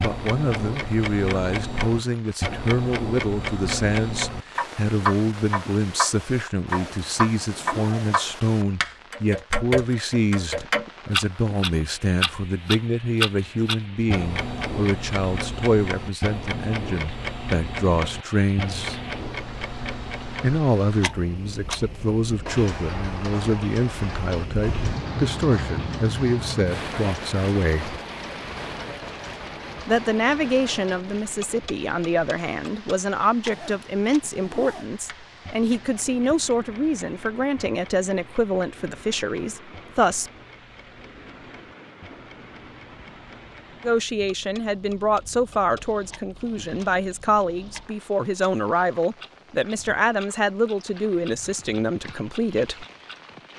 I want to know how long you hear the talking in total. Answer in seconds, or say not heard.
46 s.